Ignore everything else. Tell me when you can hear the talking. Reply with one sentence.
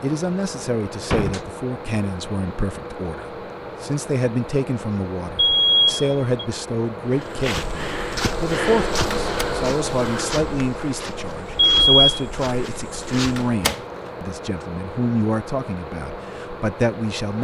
You can hear the talking from 0.0 to 17.3 s.